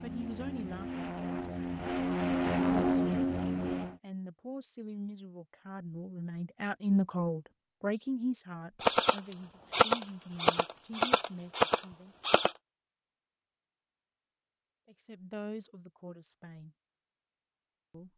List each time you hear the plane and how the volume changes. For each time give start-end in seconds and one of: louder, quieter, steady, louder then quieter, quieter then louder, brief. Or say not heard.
0.0-4.0 louder.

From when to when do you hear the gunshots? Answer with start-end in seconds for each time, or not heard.
8.8-12.6.